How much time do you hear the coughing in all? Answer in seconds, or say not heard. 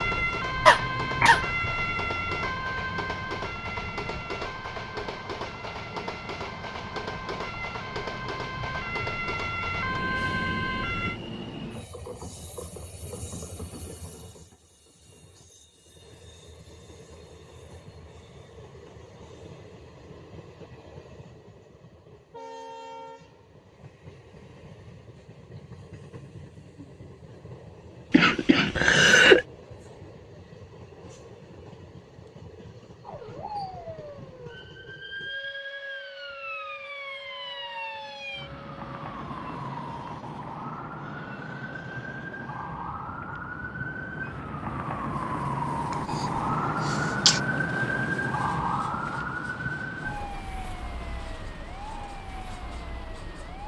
3 s.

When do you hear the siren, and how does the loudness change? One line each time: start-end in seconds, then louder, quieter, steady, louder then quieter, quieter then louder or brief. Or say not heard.
0.0-11.2 quieter then louder
33.0-53.6 louder then quieter.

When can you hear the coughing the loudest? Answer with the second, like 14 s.
29 s.